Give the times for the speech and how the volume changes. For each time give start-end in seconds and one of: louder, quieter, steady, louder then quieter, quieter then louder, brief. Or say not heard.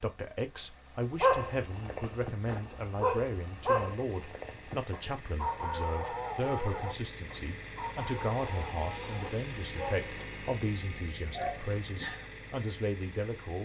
0.0-13.6 steady.